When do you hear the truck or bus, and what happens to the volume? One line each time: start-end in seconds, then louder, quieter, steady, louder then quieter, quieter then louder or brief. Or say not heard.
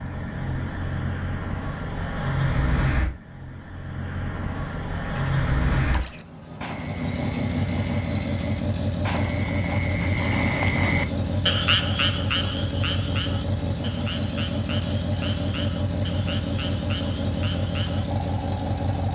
0.0-19.0 steady.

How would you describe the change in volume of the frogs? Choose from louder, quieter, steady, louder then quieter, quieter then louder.
louder then quieter.